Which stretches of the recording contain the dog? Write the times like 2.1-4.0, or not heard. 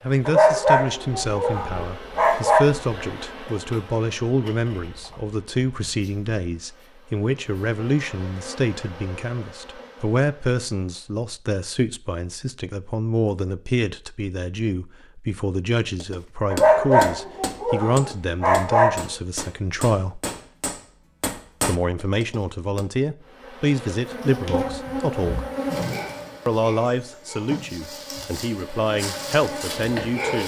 0.2-2.6, 16.5-19.1.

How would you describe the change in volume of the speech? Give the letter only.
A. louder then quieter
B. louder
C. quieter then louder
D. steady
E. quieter
D.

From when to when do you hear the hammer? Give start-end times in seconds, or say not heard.
16.0-22.9.